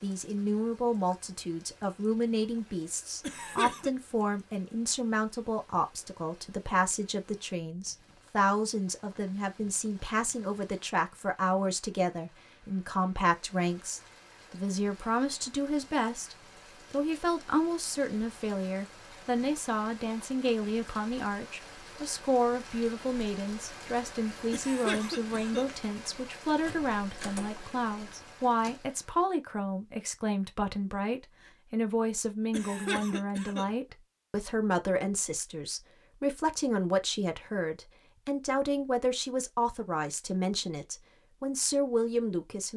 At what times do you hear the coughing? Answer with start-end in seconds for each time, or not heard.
3.2-3.9, 24.5-25.7, 32.5-33.7.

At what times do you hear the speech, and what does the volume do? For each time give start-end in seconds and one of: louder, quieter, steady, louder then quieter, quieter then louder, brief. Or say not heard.
0.0-42.7 steady.